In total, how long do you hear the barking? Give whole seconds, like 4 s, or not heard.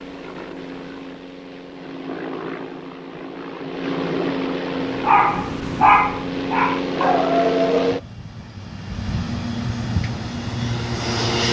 3 s.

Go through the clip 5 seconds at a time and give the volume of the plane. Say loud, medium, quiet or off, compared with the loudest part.
medium, loud, loud.